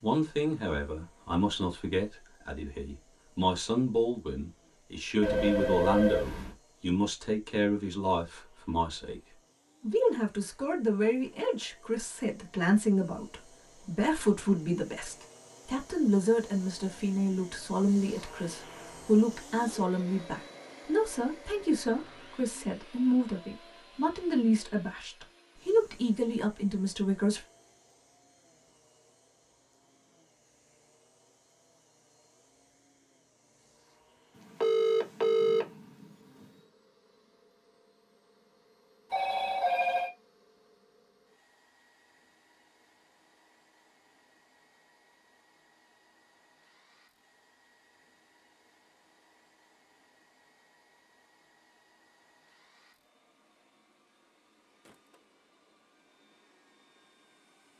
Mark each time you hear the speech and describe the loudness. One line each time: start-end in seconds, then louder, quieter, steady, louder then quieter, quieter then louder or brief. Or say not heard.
0.0-27.4 steady.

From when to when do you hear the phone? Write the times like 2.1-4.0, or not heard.
5.2-6.5, 34.4-36.5, 39.1-40.1.